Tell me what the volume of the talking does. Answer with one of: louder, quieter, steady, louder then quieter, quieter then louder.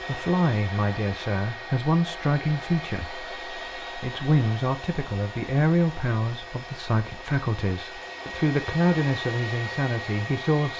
steady.